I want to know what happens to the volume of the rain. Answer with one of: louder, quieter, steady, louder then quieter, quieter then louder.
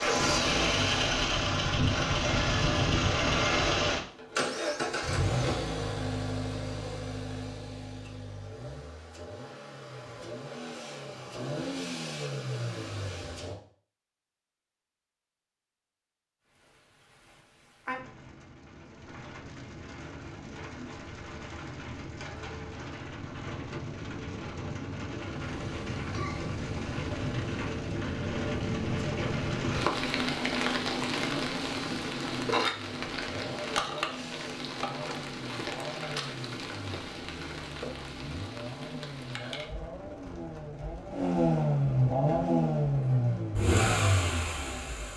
louder then quieter.